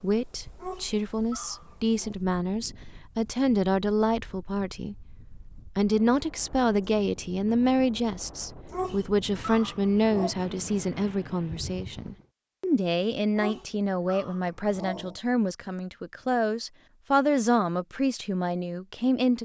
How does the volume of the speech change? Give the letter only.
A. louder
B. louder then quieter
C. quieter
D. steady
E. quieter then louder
D.